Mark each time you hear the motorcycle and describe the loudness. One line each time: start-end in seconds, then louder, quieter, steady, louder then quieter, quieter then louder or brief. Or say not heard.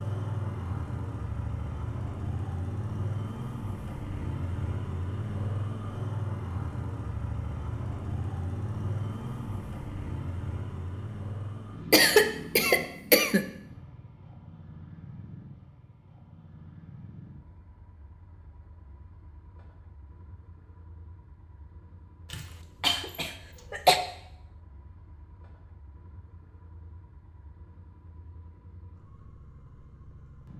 0.0-30.5 quieter.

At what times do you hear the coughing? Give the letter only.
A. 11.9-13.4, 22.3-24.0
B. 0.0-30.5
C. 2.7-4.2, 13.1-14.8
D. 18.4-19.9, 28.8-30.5
A.